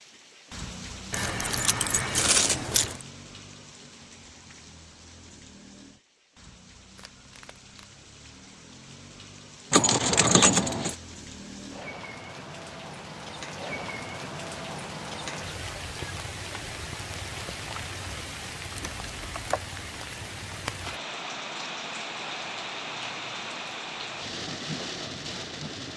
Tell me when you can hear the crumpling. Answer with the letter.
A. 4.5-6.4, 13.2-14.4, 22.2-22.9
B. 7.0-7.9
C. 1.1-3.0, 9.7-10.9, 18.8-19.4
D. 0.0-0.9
B.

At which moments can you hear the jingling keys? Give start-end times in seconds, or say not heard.
1.1-3.0, 9.7-10.9, 18.8-19.4.